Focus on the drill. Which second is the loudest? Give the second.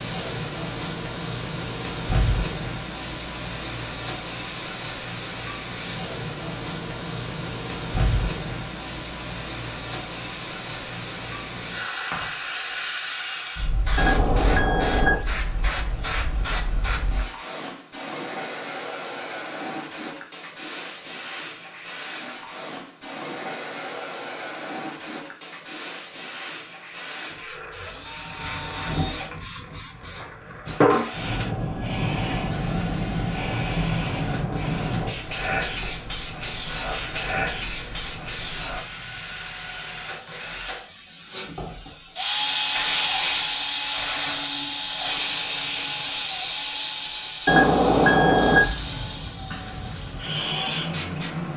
43 s.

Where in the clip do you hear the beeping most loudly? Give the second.
48 s.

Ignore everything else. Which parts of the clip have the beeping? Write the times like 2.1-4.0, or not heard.
13.9-15.2, 47.5-48.6.